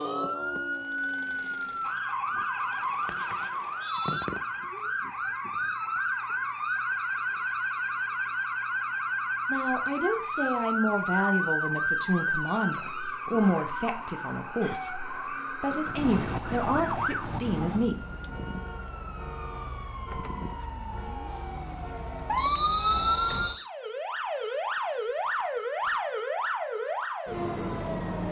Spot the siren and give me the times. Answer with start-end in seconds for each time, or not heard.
0.0-28.2.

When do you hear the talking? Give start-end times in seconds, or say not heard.
9.5-18.0.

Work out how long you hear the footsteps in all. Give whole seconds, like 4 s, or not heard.
not heard.